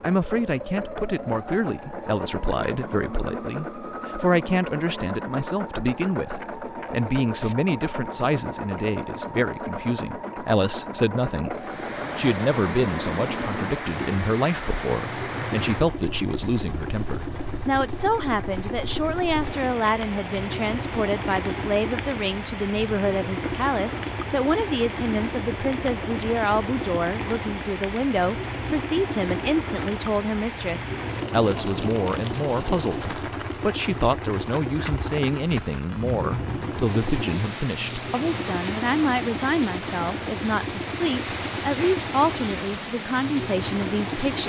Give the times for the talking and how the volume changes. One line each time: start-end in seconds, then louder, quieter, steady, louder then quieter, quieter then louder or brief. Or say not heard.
0.0-44.4 steady.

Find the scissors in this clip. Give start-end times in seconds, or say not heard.
not heard.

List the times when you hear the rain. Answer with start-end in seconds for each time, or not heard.
11.5-44.4.